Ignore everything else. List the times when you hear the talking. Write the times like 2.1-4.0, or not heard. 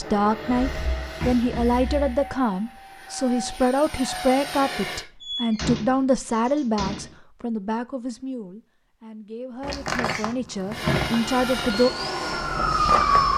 0.0-11.9.